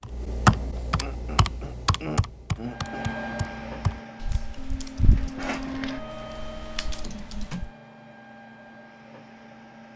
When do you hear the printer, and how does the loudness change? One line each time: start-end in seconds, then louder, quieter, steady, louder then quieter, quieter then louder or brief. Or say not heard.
2.6-9.9 quieter.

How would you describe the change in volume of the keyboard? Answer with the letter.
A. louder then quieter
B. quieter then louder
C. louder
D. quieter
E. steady
D.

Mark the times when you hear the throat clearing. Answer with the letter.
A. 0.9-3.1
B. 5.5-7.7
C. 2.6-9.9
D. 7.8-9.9
A.